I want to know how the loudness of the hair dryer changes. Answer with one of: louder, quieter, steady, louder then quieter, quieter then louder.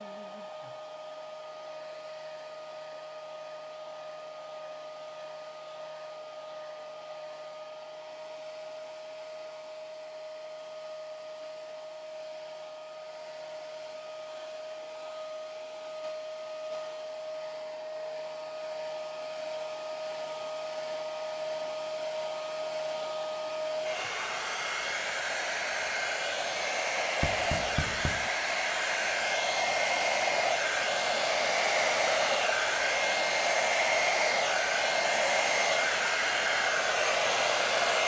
louder.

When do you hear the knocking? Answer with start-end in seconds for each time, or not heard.
27.2-28.3.